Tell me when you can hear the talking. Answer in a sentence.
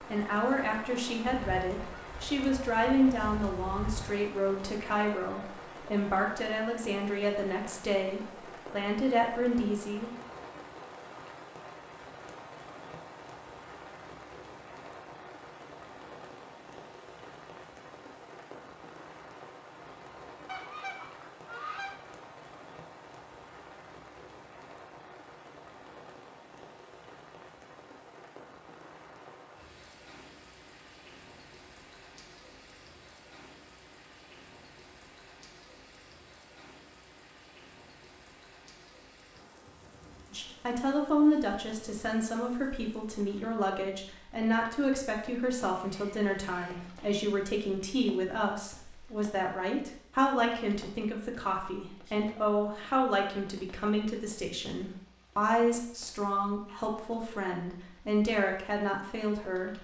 The talking can be heard from 0.1 to 10.1 s and from 40.3 to 59.7 s.